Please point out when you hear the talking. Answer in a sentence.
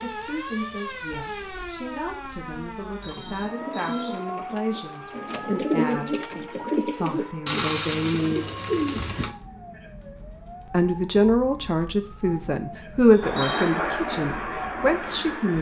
The talking can be heard from 0.0 to 8.4 s and from 10.7 to 15.5 s.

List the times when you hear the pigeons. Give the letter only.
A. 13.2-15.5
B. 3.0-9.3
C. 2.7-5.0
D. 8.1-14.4
B.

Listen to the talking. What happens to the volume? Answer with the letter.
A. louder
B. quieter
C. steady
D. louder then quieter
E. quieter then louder
A.